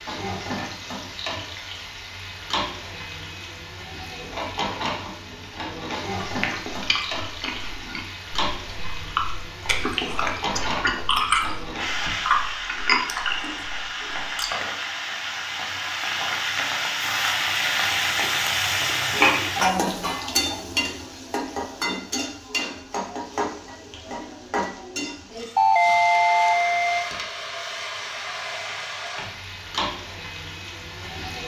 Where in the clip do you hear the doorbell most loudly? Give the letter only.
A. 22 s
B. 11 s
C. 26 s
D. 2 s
C.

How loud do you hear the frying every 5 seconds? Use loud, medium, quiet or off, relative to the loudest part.
medium, medium, medium, loud, medium, medium, quiet.